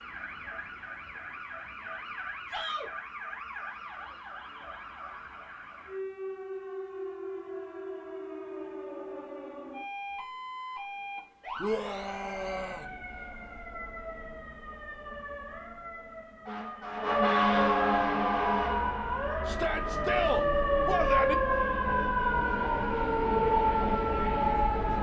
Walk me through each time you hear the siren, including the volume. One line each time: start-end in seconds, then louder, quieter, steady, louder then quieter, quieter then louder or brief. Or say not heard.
0.0-24.9 louder.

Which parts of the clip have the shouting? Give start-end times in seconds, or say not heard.
2.5-2.9, 11.6-12.8, 19.4-21.4.